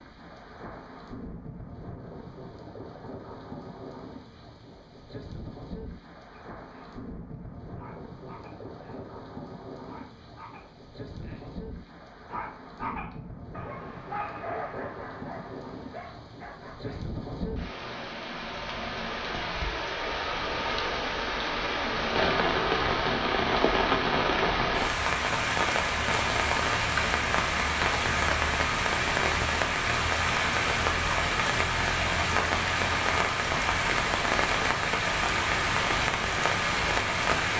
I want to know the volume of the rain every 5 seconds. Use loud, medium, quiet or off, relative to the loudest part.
quiet, quiet, quiet, medium, loud, loud, loud, loud.